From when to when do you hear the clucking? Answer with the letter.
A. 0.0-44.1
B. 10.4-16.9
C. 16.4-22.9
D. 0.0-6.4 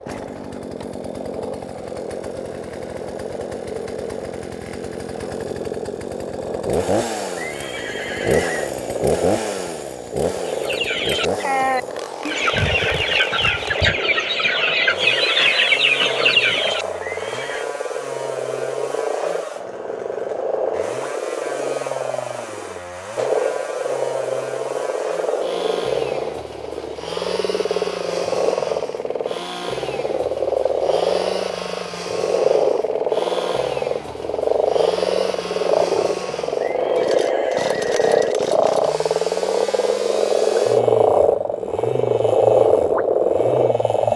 B.